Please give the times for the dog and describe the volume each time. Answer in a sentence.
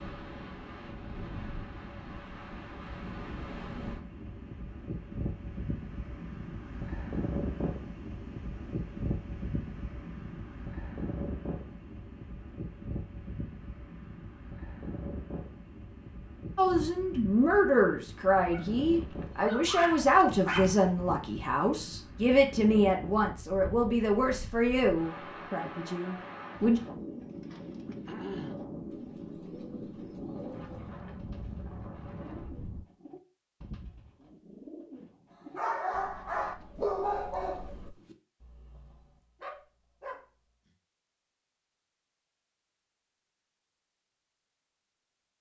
You can hear the dog briefly from 18.5 to 20.8 s; and from 35.5 to 40.7 s, getting quieter then louder.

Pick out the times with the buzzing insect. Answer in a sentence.
The buzzing insect can't be heard in this clip.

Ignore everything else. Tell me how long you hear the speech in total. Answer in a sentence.
You can hear the speech for 10 seconds altogether.